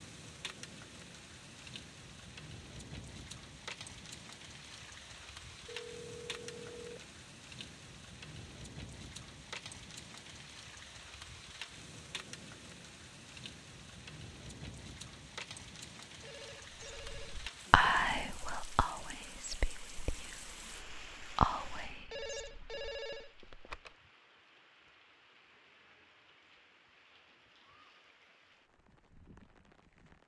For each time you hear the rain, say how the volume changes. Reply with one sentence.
The rain can be heard from 0.0 to 30.2 s, getting quieter.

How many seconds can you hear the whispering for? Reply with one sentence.
The whispering can be heard for 6 seconds in total.